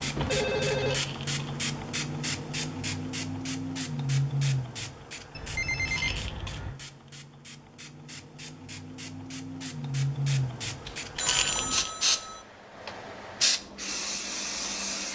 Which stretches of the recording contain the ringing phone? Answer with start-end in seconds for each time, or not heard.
0.1-1.0, 5.3-6.8, 10.8-12.4.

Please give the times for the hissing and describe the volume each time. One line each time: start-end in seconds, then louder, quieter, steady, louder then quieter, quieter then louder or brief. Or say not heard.
0.0-15.0 quieter then louder.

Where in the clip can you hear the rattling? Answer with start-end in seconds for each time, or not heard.
0.8-1.4, 5.8-6.6, 11.2-11.9.